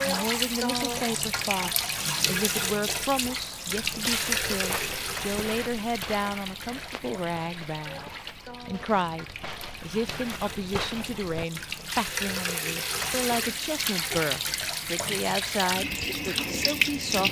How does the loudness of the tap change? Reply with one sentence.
The loudness of the tap goes down, then up.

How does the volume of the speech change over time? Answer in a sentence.
The loudness of the speech stays about the same.